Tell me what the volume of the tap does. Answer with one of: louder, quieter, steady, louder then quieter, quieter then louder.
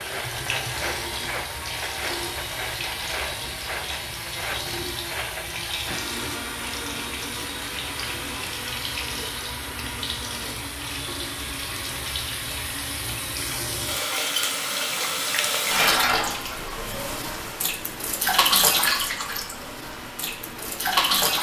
louder.